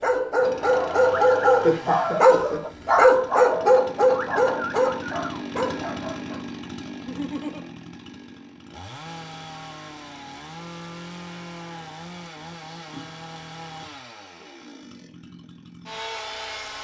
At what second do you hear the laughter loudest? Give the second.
2 s.